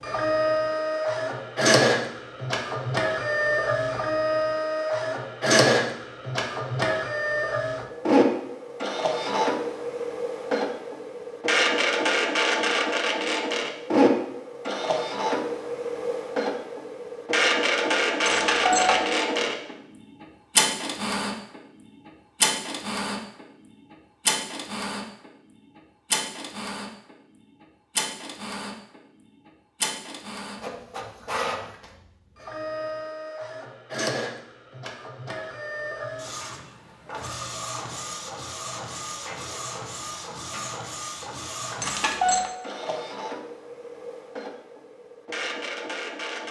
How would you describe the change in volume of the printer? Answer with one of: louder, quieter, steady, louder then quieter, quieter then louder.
quieter.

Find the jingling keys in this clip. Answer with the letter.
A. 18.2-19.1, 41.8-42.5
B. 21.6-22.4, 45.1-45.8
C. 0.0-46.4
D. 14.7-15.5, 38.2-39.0
A.